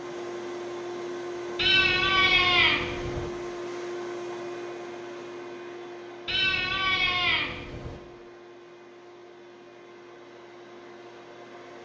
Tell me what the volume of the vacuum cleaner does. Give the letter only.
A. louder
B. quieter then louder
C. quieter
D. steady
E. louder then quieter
C.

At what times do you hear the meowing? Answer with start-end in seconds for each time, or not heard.
1.6-3.3, 6.2-8.0.